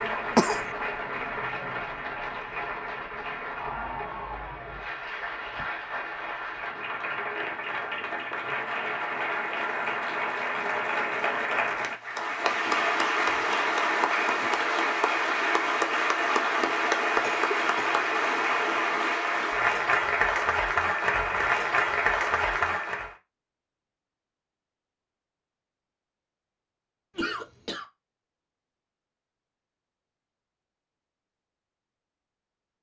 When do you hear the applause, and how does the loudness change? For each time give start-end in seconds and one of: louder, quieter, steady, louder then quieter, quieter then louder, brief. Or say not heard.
0.0-23.1 louder.